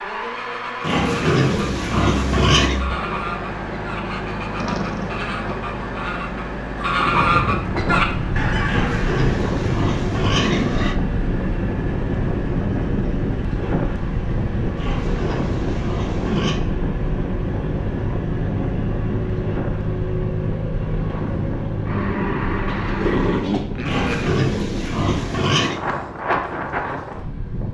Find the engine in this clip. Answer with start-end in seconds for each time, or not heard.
0.0-23.4.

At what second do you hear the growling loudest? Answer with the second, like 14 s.
23 s.